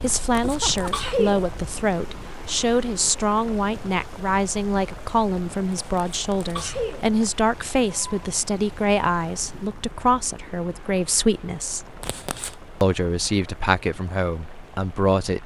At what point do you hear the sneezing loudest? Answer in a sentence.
The volume of the sneezing peaks at 1 second.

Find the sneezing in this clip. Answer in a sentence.
You can hear the sneezing from 0.1 to 1.4 s, from 5.7 to 7.0 s and from 12.0 to 12.5 s.